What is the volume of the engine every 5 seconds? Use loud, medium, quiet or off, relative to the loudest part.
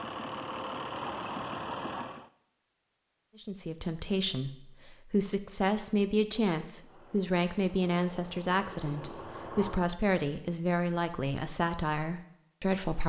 loud, medium, off.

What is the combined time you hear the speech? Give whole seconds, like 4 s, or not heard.
10 s.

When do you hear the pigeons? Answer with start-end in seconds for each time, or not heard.
not heard.